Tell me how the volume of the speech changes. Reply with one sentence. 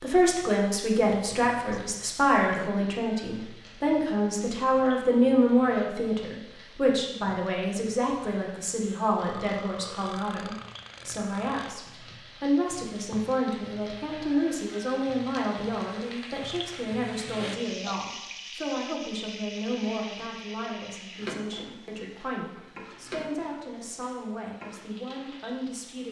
The volume of the speech goes down.